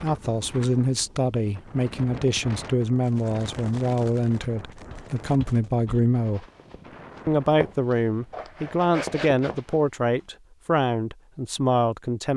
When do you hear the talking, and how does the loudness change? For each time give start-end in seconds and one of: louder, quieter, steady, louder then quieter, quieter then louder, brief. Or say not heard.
0.0-6.5 steady
7.2-12.3 steady.